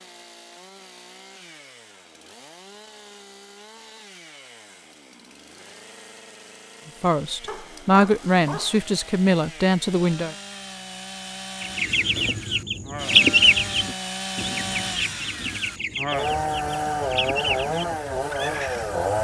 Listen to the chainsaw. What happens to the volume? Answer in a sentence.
The loudness of the chainsaw goes up.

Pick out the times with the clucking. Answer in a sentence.
The clucking can be heard from 11.6 to 18.9 s.